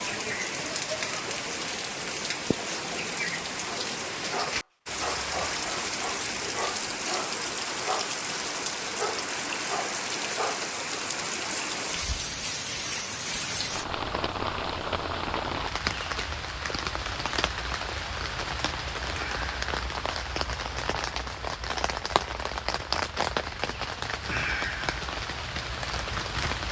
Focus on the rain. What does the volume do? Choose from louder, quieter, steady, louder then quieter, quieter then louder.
steady.